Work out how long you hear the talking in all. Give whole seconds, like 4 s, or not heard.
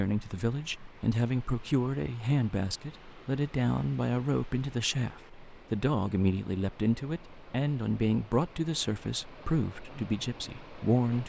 11 s.